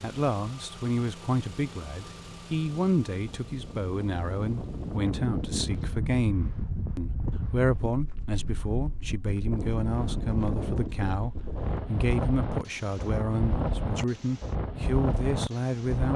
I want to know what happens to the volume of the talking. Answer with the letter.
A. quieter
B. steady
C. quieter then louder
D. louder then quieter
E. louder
B.